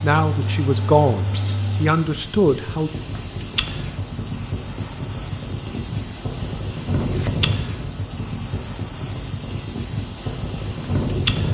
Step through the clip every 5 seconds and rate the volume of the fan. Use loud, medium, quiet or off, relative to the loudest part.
medium, loud, loud.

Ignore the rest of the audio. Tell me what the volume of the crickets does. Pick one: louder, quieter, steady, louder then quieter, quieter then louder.
steady.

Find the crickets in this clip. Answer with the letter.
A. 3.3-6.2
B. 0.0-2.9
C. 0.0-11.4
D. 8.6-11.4
C.